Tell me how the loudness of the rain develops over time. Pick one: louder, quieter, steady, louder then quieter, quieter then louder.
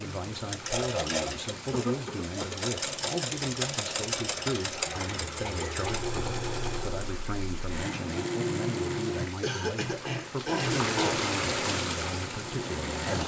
louder.